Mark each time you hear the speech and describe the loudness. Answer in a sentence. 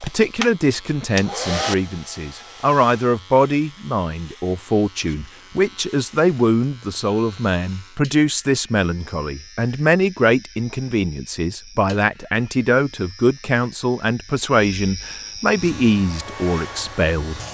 The speech can be heard from 0.0 to 17.4 s, at a steady volume.